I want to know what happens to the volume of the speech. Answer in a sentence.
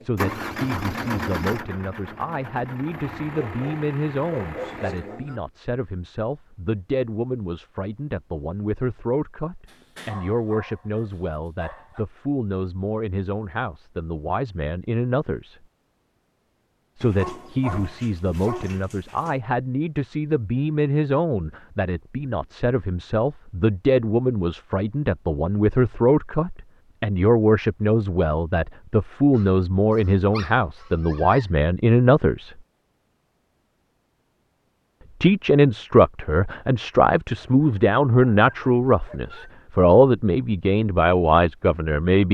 The loudness of the speech goes up.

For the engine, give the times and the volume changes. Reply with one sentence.
You can hear the engine from 0.0 to 5.2 s, getting quieter.